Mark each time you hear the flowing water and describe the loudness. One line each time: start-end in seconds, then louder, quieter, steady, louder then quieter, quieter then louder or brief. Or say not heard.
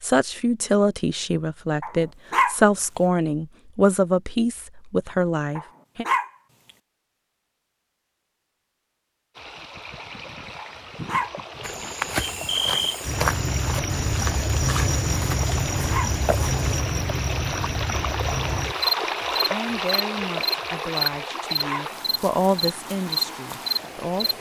9.3-24.3 louder then quieter.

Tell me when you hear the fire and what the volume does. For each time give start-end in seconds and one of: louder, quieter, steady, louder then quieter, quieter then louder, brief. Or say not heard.
not heard.